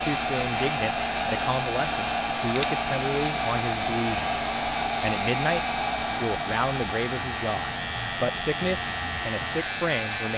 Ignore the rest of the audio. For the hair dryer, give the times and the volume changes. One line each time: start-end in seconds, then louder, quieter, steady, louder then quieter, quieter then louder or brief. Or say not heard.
0.0-10.3 quieter.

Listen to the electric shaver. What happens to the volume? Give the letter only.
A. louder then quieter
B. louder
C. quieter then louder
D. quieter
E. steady
B.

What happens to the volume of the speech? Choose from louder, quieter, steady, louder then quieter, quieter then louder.
steady.